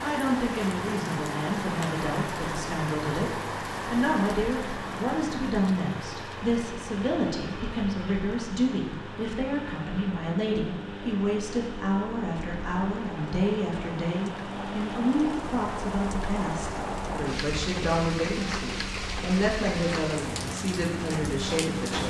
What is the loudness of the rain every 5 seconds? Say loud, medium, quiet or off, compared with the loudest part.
loud, medium, medium, loud, loud.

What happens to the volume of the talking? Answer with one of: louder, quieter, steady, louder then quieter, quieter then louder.
steady.